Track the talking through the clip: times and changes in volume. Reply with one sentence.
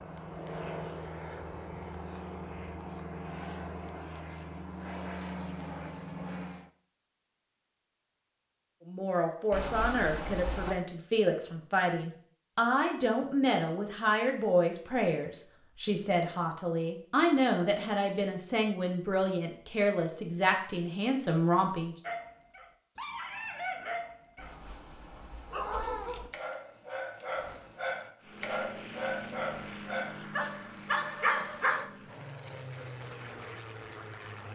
The talking can be heard from 8.8 to 21.9 s, at a steady volume.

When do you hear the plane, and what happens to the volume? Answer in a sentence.
You can hear the plane from 0.0 to 6.7 s, at a steady volume; and from 28.2 to 34.5 s, getting quieter then louder.